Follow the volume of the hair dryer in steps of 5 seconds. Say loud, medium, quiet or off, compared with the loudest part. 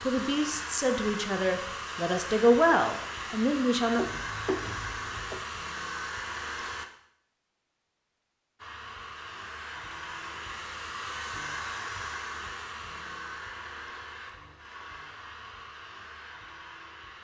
loud, loud, loud, medium.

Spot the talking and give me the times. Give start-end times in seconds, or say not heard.
0.0-4.0.